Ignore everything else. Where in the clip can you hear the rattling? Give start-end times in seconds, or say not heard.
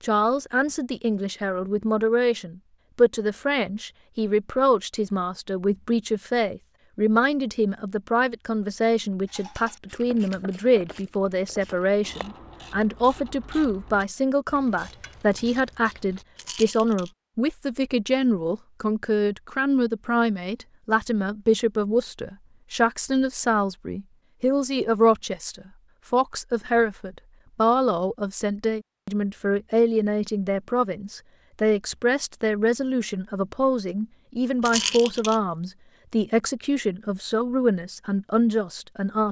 16.4-17.1, 34.6-35.4.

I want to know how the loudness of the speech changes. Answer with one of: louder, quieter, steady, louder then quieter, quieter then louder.
steady.